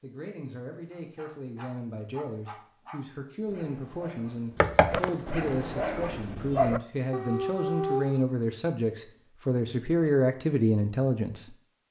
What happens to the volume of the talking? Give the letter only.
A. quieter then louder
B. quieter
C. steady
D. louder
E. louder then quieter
D.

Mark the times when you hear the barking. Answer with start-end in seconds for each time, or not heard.
0.9-8.2.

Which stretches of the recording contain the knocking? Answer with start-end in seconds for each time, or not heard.
4.6-5.6.